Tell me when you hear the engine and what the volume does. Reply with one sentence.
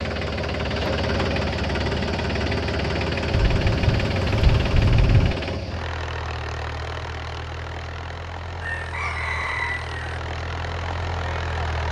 The engine can be heard from 0.0 to 11.8 s, getting quieter.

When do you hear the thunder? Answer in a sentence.
You can hear the thunder from 3.3 to 5.3 s.